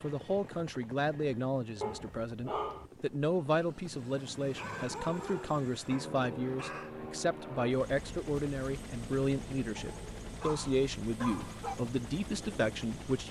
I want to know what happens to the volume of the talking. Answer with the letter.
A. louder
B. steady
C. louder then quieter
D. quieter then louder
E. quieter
B.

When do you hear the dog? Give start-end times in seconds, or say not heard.
1.8-2.9, 4.5-7.0, 9.8-11.8.